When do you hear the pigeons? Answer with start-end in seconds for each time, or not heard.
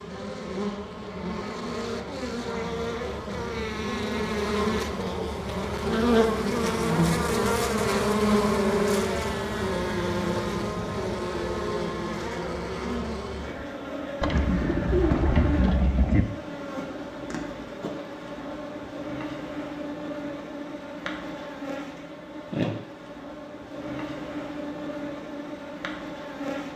14.2-16.2.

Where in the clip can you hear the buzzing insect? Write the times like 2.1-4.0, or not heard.
0.0-26.7.